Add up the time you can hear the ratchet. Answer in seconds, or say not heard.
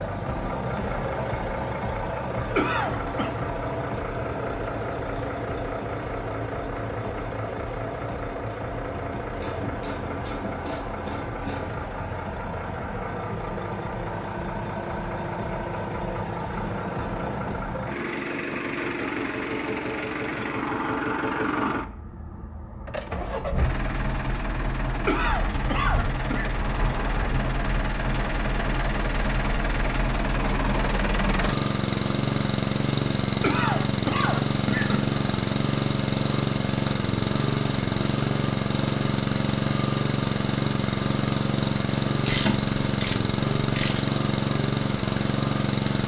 4 s.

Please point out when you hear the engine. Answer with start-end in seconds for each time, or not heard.
0.0-46.0.